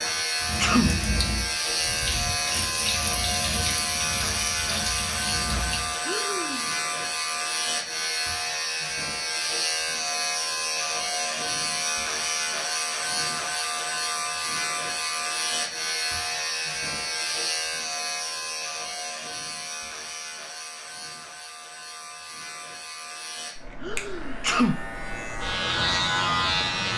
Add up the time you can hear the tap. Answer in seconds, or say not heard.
6 s.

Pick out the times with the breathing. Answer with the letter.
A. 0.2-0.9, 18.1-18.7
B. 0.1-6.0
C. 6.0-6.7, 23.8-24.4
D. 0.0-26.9
C.